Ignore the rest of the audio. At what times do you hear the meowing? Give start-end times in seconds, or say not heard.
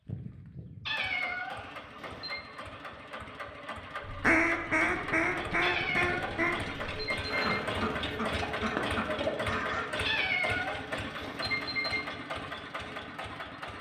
0.8-2.4, 5.6-7.5, 10.0-12.0.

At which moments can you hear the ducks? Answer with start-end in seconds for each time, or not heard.
4.0-9.9.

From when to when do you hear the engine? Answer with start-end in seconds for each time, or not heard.
0.1-13.7.